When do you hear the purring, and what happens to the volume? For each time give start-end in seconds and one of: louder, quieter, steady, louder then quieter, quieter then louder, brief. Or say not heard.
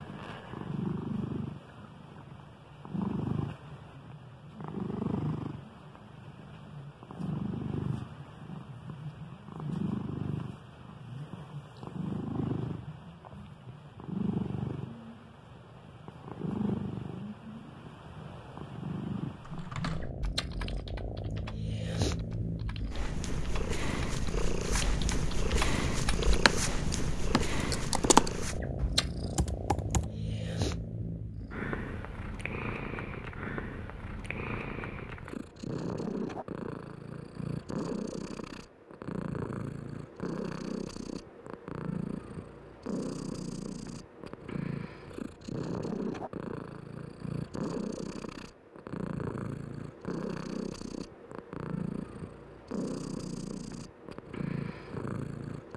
0.0-55.7 steady.